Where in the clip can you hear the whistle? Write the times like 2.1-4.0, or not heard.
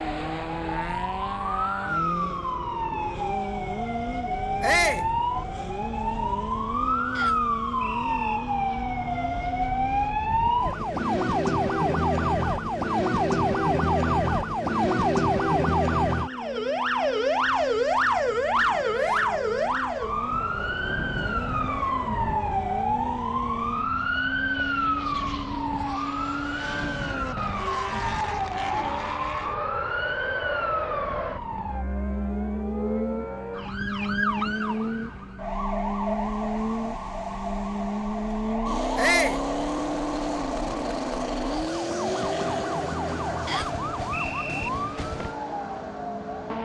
7.2-8.4, 43.5-44.7.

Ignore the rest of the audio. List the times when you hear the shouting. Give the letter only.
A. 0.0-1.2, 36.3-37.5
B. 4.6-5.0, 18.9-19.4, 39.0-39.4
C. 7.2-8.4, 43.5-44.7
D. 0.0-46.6
B.